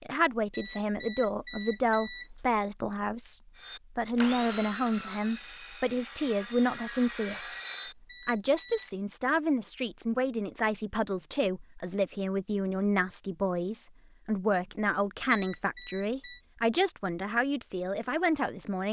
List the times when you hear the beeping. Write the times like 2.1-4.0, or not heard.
0.5-2.5, 7.6-8.9, 15.3-16.4.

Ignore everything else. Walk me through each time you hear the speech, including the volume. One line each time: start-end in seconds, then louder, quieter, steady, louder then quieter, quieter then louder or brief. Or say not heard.
0.0-7.5 steady
8.2-18.8 steady.